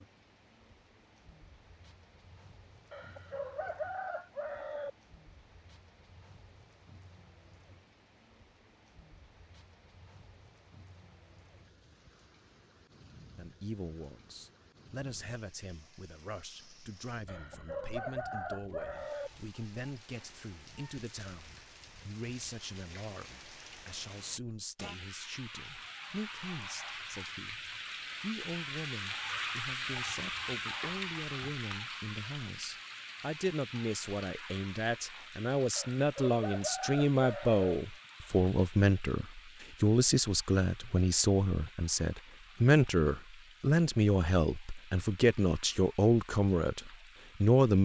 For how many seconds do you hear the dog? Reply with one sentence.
You can't hear the dog here.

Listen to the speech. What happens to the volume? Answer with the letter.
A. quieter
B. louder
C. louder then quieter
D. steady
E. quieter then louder
B.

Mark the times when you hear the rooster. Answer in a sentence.
You can hear the rooster from 2.9 to 4.9 s, from 17.2 to 19.3 s and from 35.8 to 37.8 s.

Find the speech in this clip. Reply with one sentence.
The speech can be heard from 13.3 to 47.8 s.